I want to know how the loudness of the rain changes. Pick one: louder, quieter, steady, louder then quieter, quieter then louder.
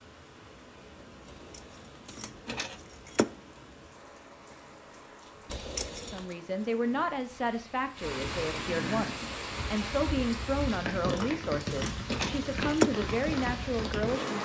louder.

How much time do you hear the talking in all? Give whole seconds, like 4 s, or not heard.
8 s.